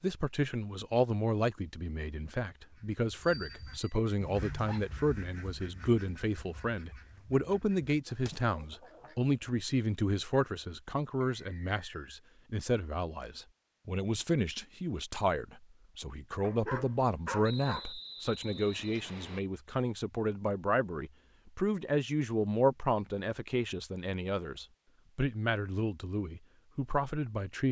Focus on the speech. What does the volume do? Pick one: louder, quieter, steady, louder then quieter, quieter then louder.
steady.